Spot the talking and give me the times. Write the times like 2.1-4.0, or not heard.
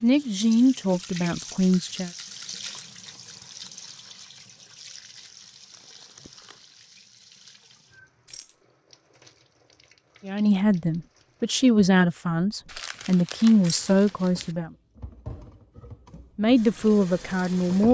0.0-2.1, 10.2-14.7, 16.4-17.8.